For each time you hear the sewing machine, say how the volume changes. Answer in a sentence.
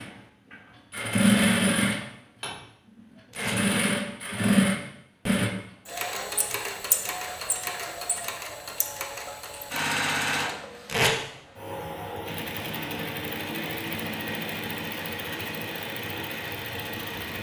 You can hear the sewing machine from 0.0 to 17.3 s, getting quieter.